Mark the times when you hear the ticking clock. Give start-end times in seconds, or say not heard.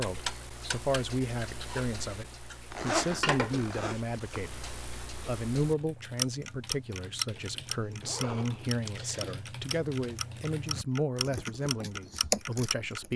0.0-13.1.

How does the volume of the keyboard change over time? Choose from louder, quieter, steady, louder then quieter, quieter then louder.
louder.